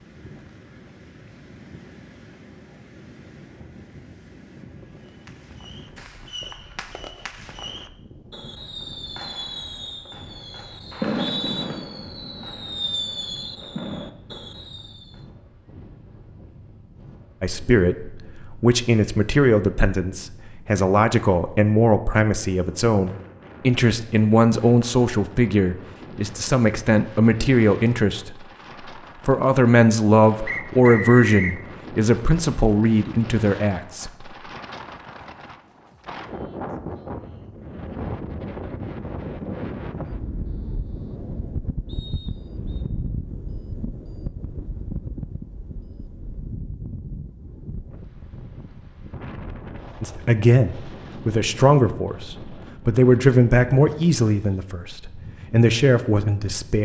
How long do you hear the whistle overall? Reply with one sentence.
The whistle can be heard for 3 seconds in total.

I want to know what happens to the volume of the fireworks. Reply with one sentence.
The volume of the fireworks goes up.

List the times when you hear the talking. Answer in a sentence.
You can hear the talking from 17.4 to 28.4 s, from 29.2 to 34.3 s and from 50.0 to 56.8 s.